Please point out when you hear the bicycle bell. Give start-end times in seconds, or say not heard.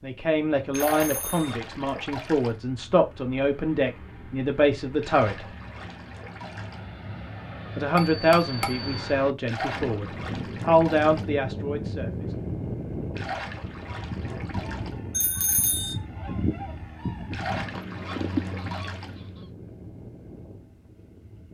0.8-1.6, 8.0-8.9, 15.1-15.9.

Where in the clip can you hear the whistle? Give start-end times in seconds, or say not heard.
not heard.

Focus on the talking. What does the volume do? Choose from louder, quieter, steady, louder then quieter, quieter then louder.
steady.